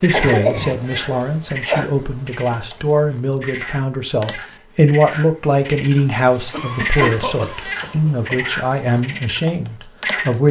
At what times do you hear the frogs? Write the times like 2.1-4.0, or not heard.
0.0-10.3.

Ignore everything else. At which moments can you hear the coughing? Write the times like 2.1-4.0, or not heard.
0.1-1.9, 6.5-8.3.